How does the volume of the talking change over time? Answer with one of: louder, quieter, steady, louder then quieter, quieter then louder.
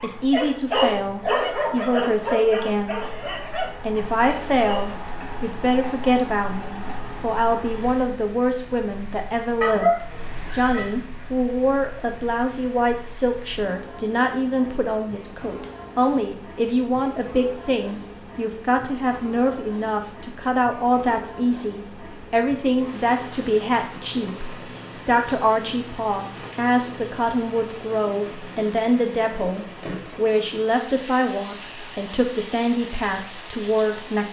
steady.